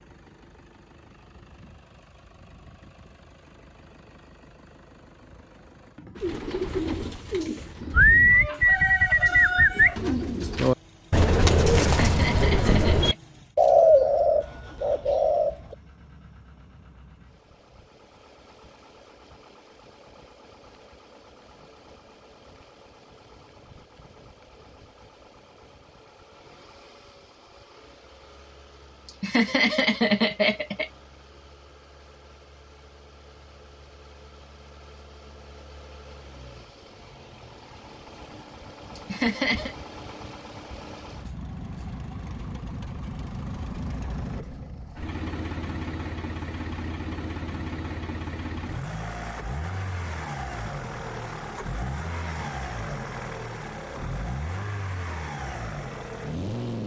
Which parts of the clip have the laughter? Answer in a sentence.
The laughter can be heard from 11.8 to 13.2 s, from 29.1 to 30.9 s and from 39.0 to 39.8 s.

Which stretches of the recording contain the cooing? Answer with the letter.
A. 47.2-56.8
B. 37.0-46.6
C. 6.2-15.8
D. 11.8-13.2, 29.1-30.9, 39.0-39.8
C.